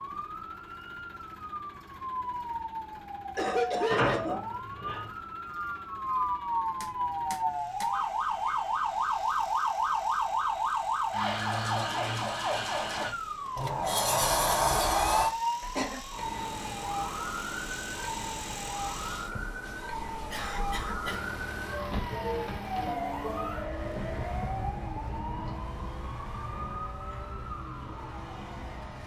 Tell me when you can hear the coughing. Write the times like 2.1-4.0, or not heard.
3.4-4.4, 15.6-16.2, 20.3-21.2.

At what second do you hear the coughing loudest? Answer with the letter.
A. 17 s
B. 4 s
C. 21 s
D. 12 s
B.